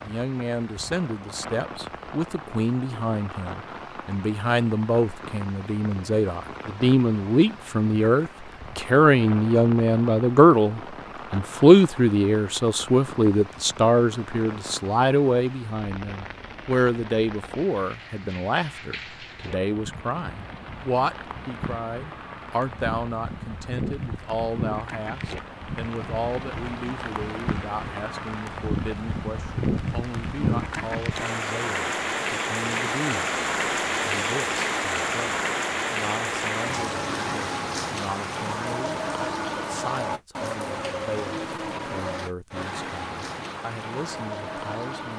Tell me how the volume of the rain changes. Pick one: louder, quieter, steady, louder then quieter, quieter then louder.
louder.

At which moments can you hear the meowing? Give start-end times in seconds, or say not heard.
not heard.